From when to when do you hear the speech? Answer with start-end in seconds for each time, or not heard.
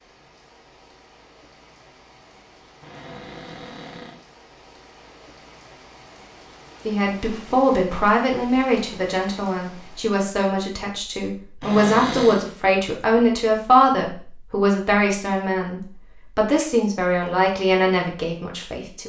6.8-19.0.